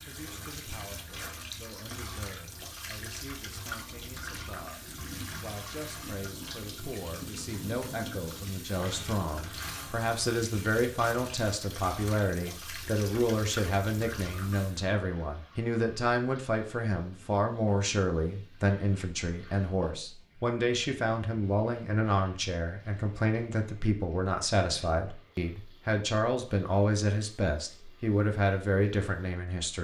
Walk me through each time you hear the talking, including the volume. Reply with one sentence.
You can hear the talking from 0.0 to 29.7 s, getting louder.